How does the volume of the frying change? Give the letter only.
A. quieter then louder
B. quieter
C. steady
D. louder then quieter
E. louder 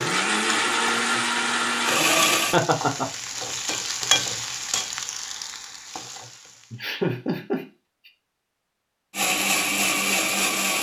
D.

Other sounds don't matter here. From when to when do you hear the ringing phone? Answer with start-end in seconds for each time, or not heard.
not heard.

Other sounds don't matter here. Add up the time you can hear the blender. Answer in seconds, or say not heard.
4 s.